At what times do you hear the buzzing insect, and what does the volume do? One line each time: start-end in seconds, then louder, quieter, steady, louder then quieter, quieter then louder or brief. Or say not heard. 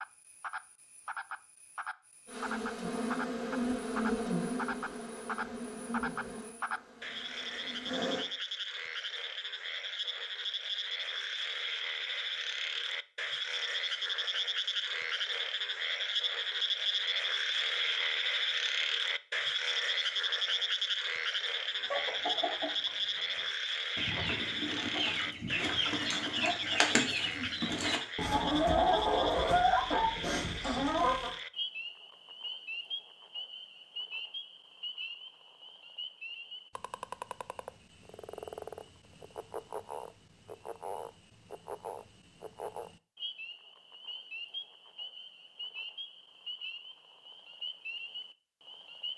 2.2-8.2 quieter.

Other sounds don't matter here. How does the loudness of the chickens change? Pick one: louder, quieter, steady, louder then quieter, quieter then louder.
louder.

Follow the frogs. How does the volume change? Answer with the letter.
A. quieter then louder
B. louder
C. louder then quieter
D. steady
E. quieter
C.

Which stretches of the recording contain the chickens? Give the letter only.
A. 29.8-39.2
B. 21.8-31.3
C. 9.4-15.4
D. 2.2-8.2
B.